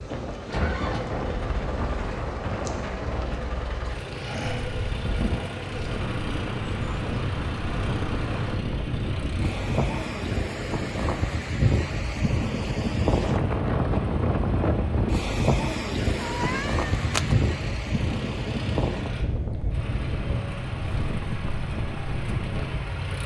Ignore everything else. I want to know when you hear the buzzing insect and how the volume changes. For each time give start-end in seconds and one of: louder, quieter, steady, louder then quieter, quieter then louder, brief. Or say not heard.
0.0-8.6 steady.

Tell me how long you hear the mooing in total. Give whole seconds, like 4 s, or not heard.
not heard.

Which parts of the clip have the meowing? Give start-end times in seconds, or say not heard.
16.1-17.4.